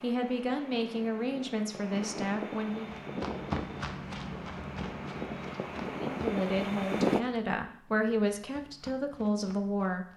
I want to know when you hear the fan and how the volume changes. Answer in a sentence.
You can hear the fan from 0.0 to 7.2 s, getting louder.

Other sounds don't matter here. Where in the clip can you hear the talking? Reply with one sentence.
The talking can be heard from 0.0 to 3.0 s and from 6.1 to 10.1 s.